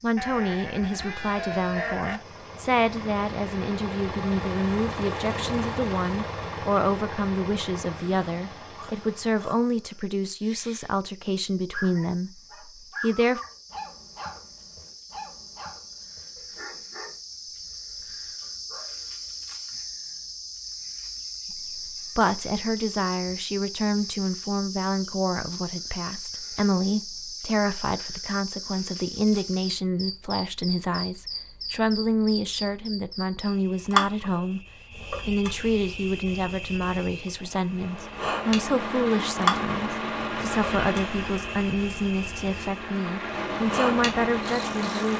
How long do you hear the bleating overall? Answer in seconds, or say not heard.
2 s.